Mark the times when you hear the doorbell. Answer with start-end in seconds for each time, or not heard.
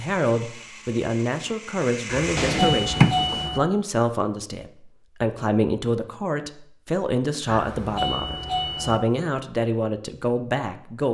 2.0-3.6, 7.5-9.0.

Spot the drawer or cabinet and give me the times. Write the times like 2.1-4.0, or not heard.
2.4-3.5.